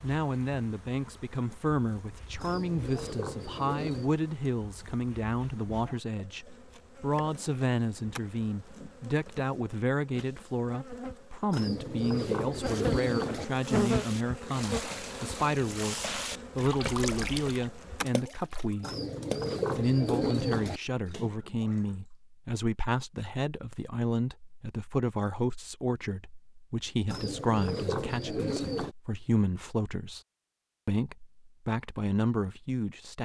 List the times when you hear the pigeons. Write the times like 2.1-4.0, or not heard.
2.4-4.1, 11.5-13.4, 18.8-20.8, 27.1-28.9.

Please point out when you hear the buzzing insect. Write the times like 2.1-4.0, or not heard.
0.0-18.1.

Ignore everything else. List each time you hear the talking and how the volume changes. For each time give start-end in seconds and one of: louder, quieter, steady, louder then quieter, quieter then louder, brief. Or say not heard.
0.0-18.9 steady
19.8-30.2 steady
30.9-33.1 brief.